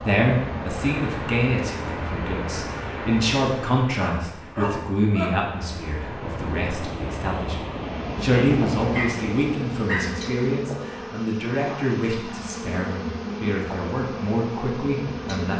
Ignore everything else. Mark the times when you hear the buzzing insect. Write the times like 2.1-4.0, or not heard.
7.8-15.5.